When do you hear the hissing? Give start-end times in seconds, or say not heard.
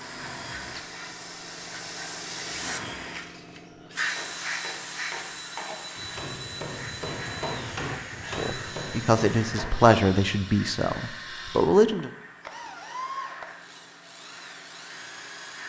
0.0-15.6.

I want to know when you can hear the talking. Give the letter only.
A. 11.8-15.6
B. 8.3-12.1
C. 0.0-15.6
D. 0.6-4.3
B.